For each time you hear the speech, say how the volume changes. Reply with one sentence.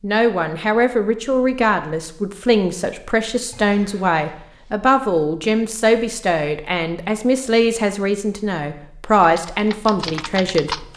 You can hear the speech from 0.0 to 10.8 s, at a steady volume.